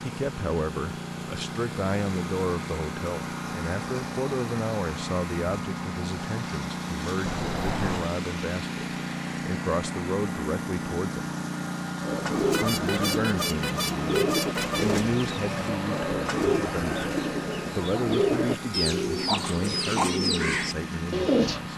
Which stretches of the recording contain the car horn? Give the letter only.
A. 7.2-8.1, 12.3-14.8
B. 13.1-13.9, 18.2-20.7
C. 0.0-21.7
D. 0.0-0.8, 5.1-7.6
A.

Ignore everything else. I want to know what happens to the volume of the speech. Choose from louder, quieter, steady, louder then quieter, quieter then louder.
steady.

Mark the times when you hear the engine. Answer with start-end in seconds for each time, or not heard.
0.0-21.7.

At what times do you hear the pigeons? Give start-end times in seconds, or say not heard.
12.0-21.6.